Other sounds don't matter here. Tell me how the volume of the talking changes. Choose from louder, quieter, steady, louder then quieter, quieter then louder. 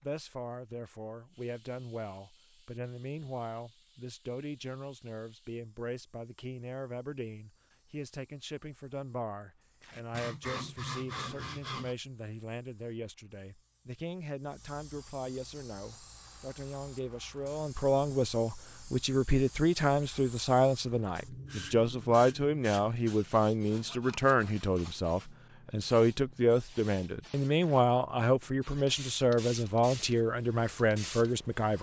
louder.